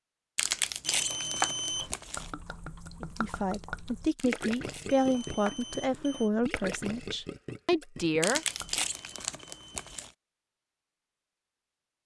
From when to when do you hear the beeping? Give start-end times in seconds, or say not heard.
0.8-1.9, 4.8-6.3, 8.3-10.1.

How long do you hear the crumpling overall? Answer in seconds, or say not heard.
6 s.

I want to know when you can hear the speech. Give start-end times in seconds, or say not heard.
3.0-8.4.